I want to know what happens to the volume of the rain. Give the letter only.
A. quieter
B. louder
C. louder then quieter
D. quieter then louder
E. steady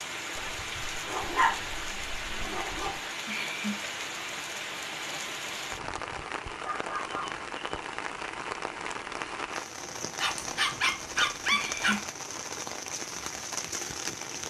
E.